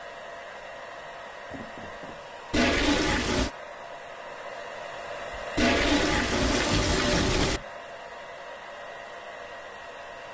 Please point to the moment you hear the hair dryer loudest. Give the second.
6 s.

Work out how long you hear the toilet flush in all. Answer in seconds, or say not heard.
3 s.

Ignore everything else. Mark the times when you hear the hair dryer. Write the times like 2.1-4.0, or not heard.
0.0-10.2.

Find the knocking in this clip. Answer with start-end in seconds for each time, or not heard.
1.5-2.2, 6.8-7.7.